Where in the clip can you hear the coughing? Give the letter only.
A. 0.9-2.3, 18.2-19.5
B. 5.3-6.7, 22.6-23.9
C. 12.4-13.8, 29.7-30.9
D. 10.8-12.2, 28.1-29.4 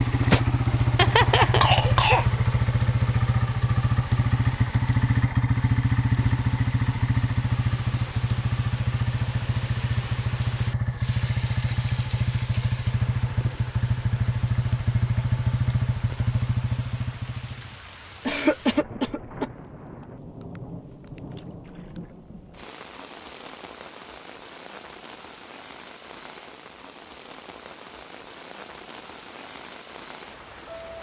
A.